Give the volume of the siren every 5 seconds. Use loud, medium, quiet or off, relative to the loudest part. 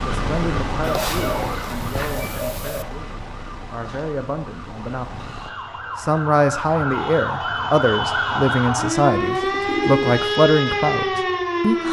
medium, loud, loud.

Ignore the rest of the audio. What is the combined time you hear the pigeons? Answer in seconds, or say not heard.
3 s.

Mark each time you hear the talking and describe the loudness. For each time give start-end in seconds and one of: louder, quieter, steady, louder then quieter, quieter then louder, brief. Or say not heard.
0.0-5.2 quieter then louder
6.0-11.8 steady.